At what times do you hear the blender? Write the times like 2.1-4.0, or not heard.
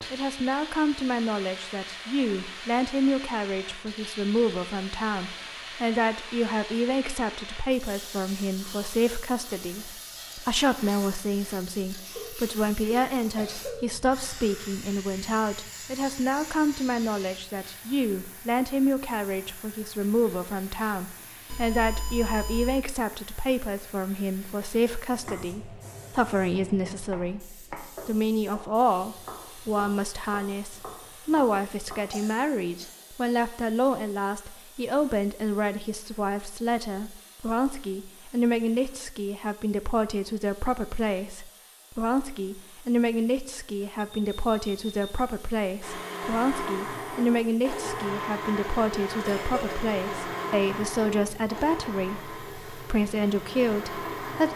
45.8-54.5.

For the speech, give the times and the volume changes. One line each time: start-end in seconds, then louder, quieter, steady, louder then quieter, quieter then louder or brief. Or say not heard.
0.1-54.5 steady.